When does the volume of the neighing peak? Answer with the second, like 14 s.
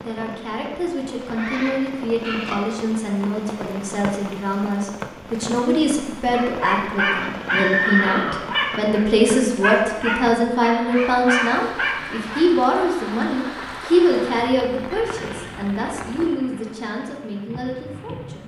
8 s.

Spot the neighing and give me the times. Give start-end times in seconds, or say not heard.
1.2-2.5, 7.2-8.8, 14.9-15.7.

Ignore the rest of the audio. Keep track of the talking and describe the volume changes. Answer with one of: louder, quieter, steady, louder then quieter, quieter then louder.
louder then quieter.